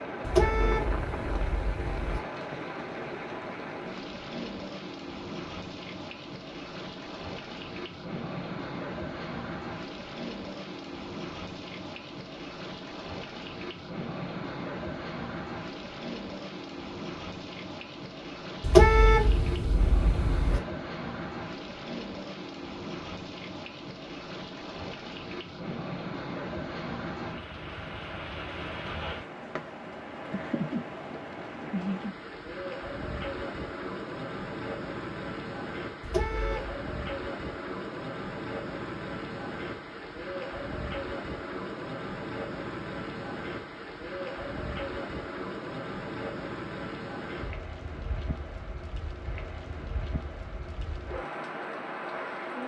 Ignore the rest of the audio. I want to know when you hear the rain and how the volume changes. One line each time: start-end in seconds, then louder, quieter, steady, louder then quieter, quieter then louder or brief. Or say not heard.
0.0-52.6 steady.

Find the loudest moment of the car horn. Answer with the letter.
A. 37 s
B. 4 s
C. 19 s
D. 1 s
C.